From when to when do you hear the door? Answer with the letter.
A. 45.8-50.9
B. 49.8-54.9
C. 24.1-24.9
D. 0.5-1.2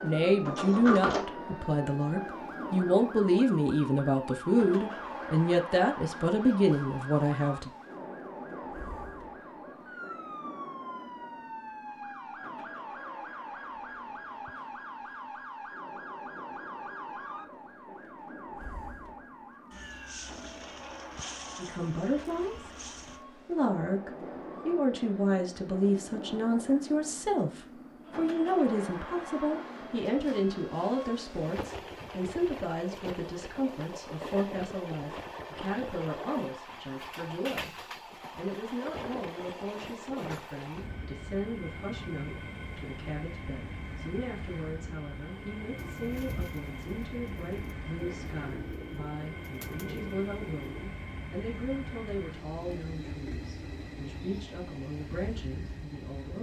D.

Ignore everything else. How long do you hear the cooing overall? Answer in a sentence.
The cooing can be heard for 5 seconds in total.